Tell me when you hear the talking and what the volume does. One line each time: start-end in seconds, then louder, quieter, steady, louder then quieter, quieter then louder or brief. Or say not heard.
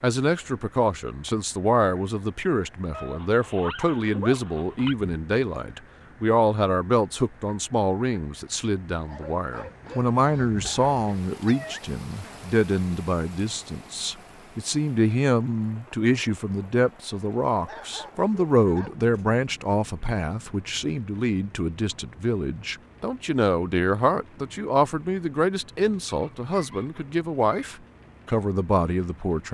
0.0-29.4 steady.